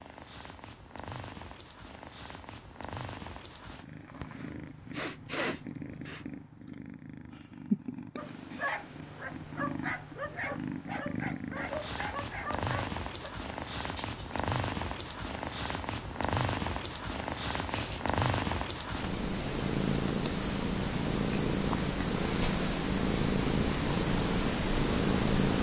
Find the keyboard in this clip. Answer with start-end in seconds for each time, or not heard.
not heard.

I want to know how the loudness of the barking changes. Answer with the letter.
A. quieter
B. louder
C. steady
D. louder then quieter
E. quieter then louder
C.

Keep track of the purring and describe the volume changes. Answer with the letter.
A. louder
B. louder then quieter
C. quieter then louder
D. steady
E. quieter
A.